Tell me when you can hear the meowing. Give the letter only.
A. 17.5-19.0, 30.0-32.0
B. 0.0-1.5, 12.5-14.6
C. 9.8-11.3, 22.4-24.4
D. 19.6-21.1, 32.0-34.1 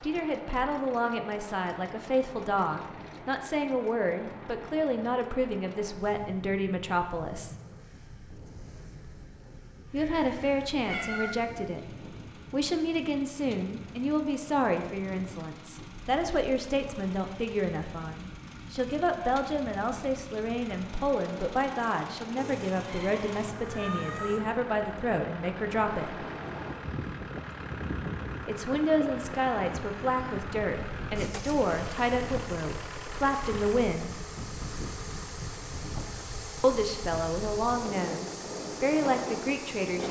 C.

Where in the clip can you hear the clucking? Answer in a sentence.
You can't hear the clucking here.